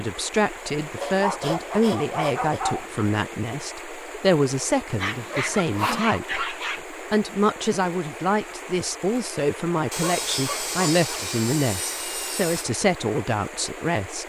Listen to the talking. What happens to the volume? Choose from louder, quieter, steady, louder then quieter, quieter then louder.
steady.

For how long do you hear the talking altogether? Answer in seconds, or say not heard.
14 s.